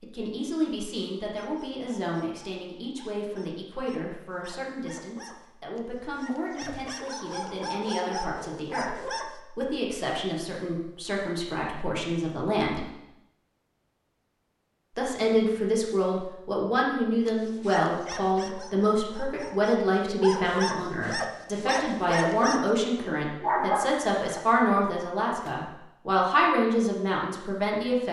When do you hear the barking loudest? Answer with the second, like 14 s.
24 s.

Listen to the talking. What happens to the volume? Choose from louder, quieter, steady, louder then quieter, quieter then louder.
louder.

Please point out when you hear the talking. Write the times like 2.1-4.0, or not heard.
0.0-12.9, 14.9-28.0.